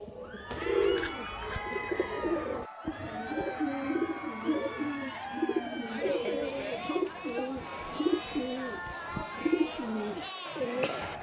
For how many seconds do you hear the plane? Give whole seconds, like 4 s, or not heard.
not heard.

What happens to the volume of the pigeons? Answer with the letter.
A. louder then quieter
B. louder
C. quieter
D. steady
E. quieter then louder
D.